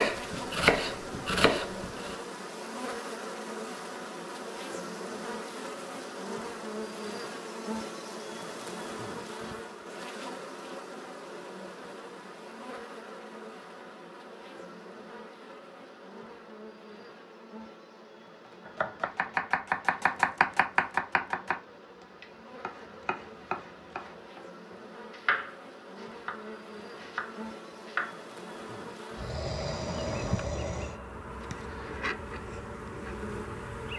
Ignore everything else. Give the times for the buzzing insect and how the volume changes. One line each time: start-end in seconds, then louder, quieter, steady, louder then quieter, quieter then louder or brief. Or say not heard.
0.0-33.9 quieter then louder.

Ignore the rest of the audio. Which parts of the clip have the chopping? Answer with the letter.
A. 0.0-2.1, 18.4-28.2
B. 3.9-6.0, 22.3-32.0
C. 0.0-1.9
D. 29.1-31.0
A.